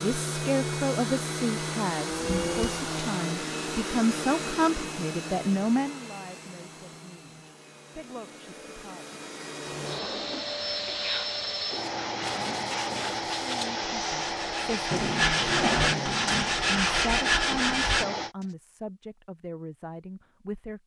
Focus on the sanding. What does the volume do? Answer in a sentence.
The volume of the sanding goes up.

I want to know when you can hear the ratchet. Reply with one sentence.
You can't hear the ratchet here.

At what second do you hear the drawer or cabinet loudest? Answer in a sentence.
The volume of the drawer or cabinet peaks at 16 seconds.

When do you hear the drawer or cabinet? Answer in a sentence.
You can hear the drawer or cabinet from 2.1 to 2.9 s, from 9.7 to 11.1 s and from 14.9 to 16.6 s.